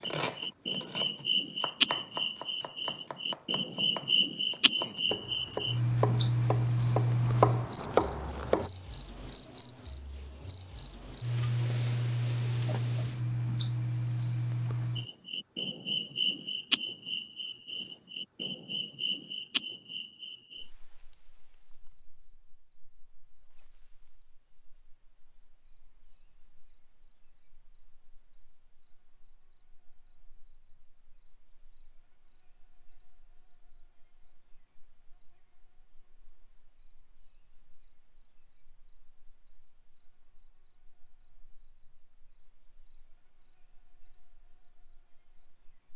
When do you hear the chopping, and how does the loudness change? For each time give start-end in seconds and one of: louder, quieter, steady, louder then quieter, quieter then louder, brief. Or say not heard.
0.0-8.7 louder.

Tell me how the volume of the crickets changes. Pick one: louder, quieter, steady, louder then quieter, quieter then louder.
quieter.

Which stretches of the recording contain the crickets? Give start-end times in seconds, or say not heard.
0.0-45.9.